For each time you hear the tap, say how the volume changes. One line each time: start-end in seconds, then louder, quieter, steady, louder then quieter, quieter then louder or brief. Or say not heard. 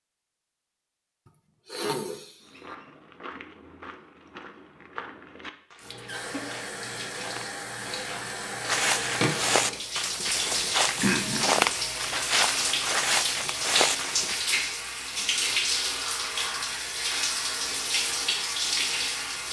5.8-19.4 louder.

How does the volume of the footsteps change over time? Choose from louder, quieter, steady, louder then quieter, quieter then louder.
louder.